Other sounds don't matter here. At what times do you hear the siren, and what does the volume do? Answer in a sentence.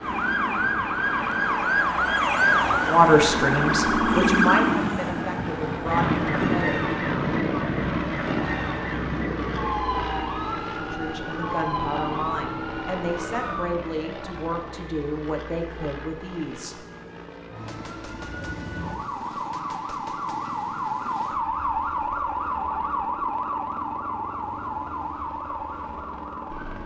You can hear the siren from 0.0 to 13.8 s, getting quieter; and from 17.4 to 26.8 s, getting louder then quieter.